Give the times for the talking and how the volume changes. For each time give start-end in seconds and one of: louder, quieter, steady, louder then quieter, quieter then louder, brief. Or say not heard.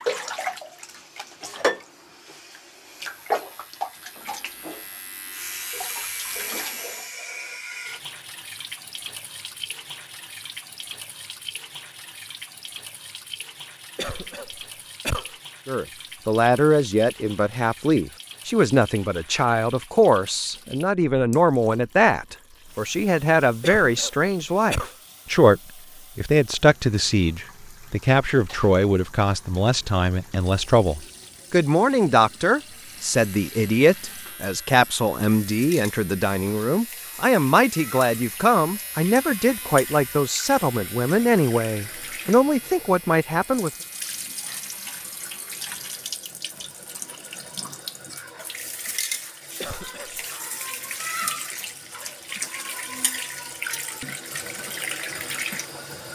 15.7-43.7 steady.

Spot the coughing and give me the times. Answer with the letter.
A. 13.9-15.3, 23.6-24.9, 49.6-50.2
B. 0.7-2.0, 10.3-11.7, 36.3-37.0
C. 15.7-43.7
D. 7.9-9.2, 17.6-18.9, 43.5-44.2
A.